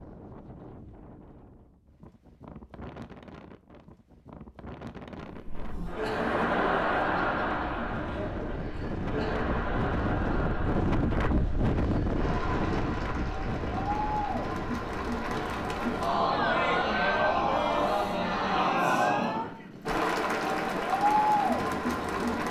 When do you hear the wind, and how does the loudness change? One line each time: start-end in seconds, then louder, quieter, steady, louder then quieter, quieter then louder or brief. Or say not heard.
0.0-22.4 louder then quieter.